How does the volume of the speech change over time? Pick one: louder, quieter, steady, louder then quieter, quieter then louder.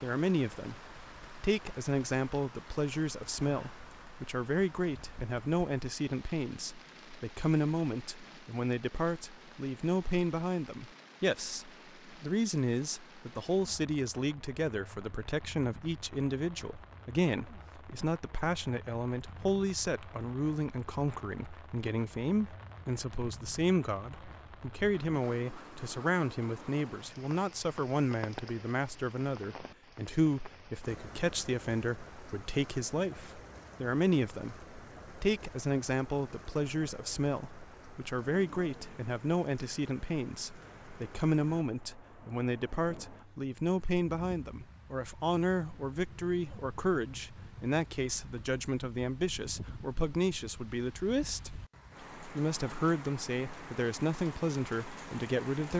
steady.